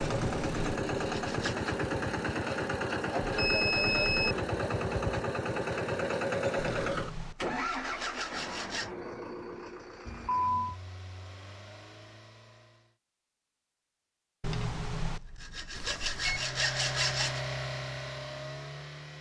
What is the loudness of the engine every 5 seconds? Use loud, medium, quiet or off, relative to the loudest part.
loud, loud, quiet, medium.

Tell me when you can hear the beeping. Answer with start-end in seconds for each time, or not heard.
3.2-4.3, 10.1-10.8, 15.8-16.5.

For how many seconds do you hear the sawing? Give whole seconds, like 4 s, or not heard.
7 s.